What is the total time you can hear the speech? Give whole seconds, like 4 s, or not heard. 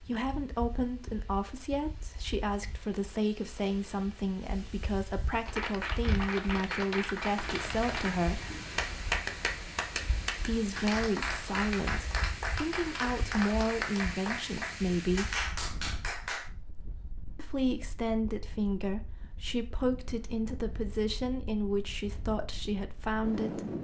20 s.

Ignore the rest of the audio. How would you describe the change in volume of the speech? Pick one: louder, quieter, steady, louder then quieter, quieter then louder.
steady.